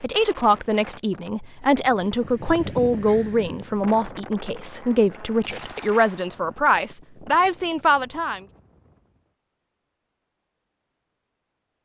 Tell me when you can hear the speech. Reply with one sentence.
You can hear the speech from 0.0 to 8.4 s.